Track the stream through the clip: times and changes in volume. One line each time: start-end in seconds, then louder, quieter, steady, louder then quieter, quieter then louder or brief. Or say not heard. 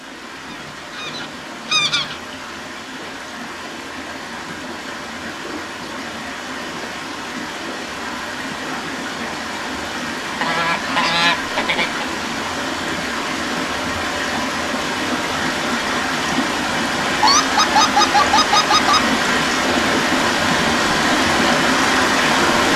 0.0-22.7 louder.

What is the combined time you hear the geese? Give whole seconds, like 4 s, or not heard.
5 s.